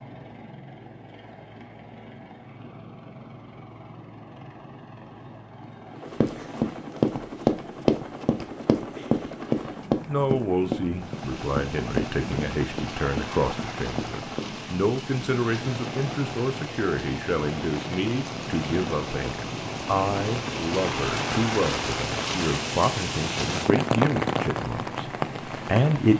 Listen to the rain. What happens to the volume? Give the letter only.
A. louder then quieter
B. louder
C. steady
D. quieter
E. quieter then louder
B.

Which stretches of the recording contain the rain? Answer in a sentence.
The rain can be heard from 10.9 to 26.1 s.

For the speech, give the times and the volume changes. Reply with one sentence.
The speech can be heard from 10.1 to 26.1 s, at a steady volume.